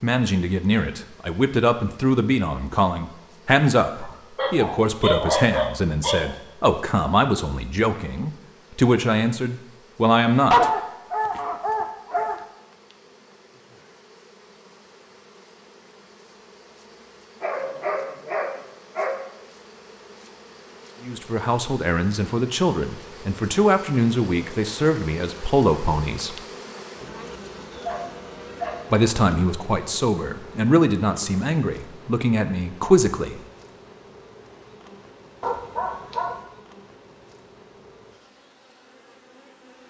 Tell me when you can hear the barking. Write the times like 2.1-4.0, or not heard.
3.9-6.3, 10.5-12.4, 17.4-19.3, 27.8-29.1, 35.4-36.5.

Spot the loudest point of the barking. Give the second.
11 s.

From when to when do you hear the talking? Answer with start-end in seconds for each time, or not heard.
0.0-10.7, 21.0-26.4, 28.9-33.4.